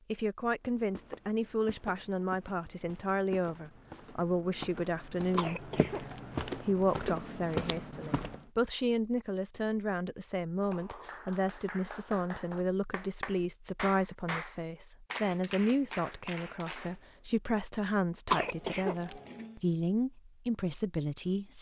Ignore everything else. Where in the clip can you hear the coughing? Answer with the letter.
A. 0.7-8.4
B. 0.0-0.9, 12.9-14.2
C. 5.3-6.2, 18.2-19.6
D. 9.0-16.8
C.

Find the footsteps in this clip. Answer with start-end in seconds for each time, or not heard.
0.7-8.4.